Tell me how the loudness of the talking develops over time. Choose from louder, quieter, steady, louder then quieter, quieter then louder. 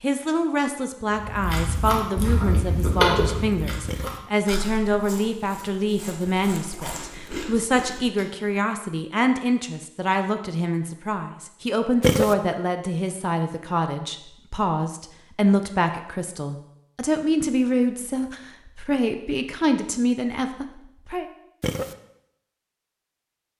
steady.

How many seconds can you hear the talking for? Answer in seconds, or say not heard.
21 s.